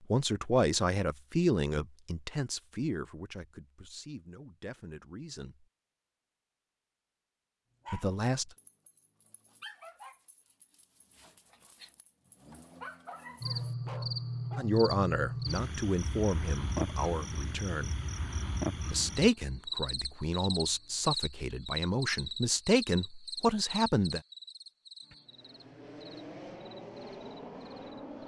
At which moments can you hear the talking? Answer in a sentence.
You can hear the talking from 0.1 to 5.7 s, from 7.9 to 8.5 s, from 14.6 to 17.9 s and from 18.9 to 24.2 s.